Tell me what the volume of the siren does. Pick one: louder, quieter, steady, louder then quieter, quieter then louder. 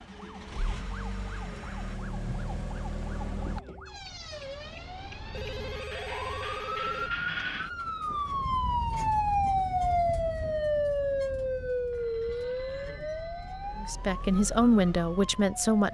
louder then quieter.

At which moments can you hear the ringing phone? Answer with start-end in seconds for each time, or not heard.
0.7-1.9, 5.3-7.1, 11.9-13.9.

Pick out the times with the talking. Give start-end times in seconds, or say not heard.
13.8-15.8.